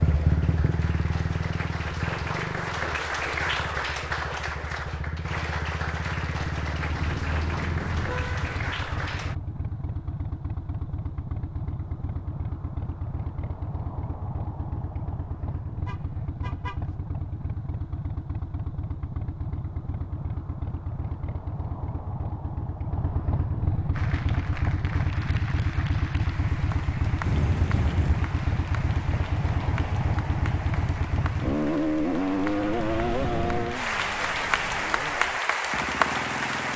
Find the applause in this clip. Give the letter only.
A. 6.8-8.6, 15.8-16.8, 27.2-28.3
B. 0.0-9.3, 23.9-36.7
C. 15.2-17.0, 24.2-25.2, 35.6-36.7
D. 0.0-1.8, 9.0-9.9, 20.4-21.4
B.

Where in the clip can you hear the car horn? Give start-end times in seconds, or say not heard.
6.8-8.6, 15.8-16.8, 27.2-28.3.